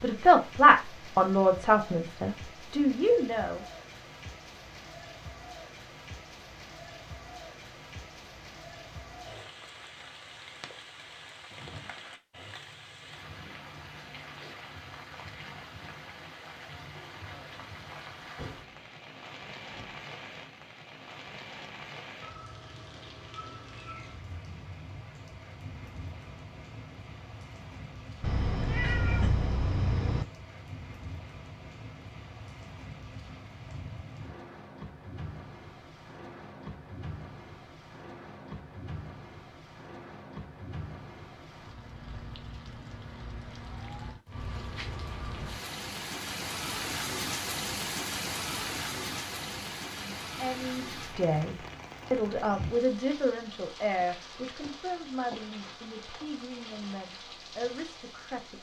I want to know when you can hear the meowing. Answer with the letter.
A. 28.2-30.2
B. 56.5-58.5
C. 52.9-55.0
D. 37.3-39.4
A.